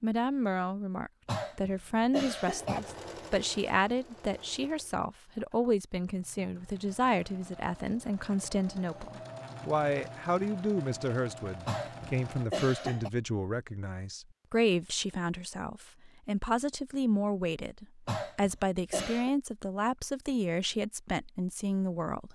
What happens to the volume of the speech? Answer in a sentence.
The volume of the speech stays about the same.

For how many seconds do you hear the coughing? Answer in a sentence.
The coughing can be heard for 4 seconds in total.